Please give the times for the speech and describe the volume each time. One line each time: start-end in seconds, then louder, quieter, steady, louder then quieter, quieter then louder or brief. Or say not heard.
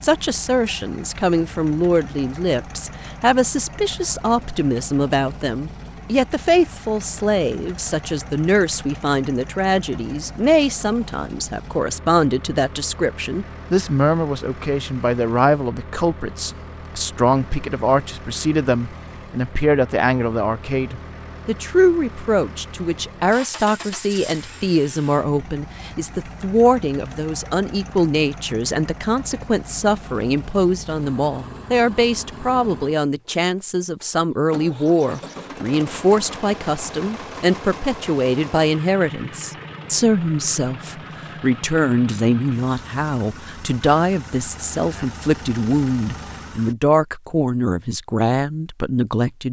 0.0-49.4 steady.